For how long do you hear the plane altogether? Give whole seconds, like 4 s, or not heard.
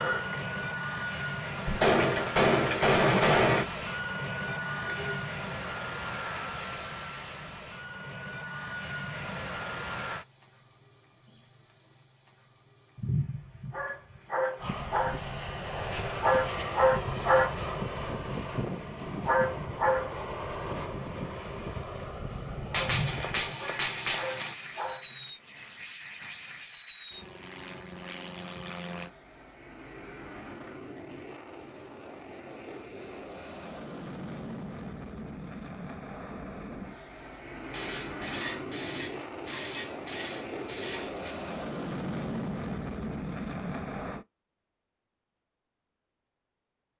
40 s.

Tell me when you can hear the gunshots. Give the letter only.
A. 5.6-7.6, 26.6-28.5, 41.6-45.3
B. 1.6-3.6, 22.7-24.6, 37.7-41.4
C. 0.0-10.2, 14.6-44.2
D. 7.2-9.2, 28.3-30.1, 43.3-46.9
B.